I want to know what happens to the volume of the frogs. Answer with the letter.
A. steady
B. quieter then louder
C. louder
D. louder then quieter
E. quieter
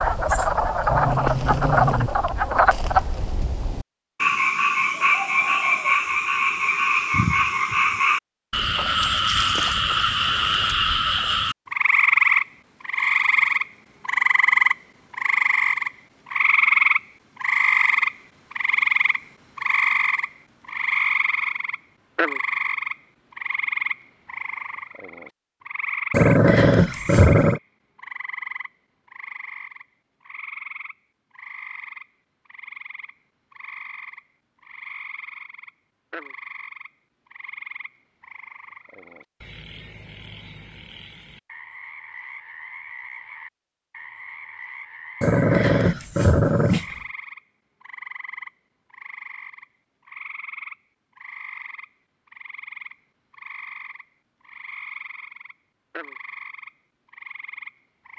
E.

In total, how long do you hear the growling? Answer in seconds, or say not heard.
5 s.